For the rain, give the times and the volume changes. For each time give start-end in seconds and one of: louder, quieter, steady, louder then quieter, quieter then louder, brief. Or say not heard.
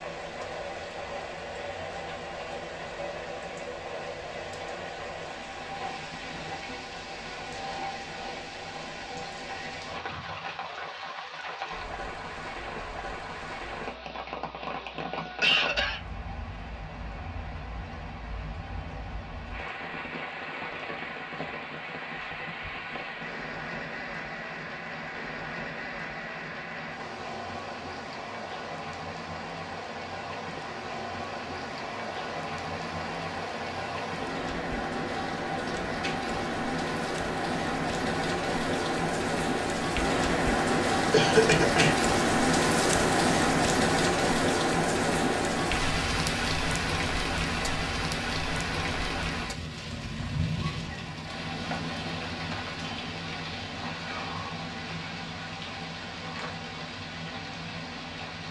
0.0-58.4 louder then quieter.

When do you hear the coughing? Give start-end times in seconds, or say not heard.
15.1-16.0, 41.1-42.0.